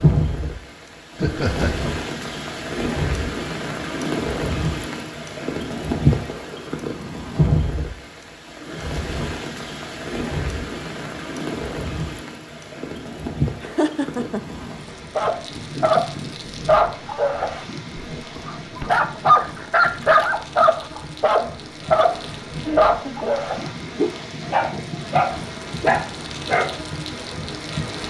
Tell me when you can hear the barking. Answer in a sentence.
You can hear the barking from 15.2 to 26.8 s.